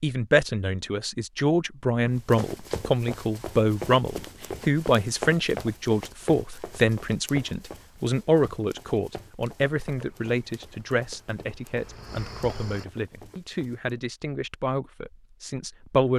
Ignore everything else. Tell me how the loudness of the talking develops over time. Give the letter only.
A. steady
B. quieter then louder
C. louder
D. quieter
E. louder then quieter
D.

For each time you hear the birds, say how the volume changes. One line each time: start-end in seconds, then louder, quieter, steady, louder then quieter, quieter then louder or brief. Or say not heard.
not heard.